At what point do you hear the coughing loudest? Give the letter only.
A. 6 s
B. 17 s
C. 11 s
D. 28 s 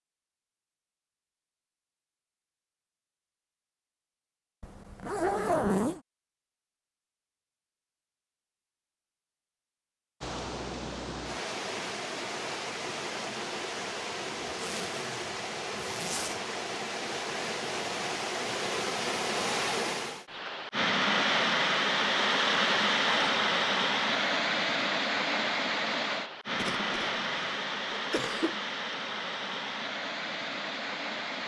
D.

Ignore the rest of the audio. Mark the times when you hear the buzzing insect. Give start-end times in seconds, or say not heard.
not heard.